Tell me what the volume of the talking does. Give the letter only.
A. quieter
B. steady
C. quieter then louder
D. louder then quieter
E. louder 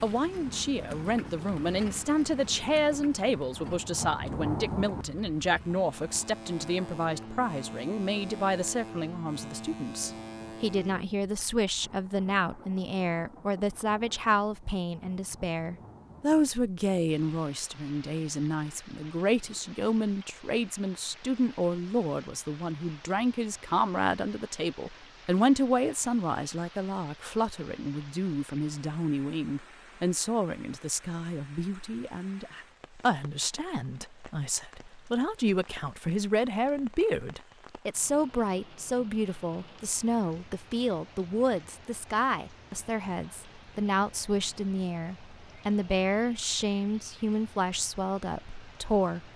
B.